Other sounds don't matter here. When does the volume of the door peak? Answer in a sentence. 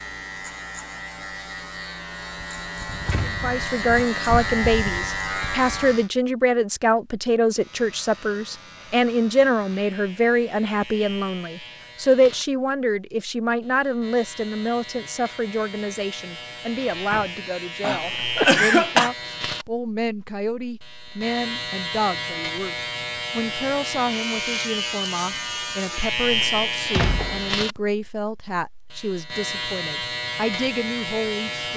The loudest moment of the door is at 27 seconds.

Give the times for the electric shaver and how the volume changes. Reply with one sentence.
You can hear the electric shaver from 0.0 to 6.1 s, getting louder; and from 7.5 to 31.7 s, getting louder.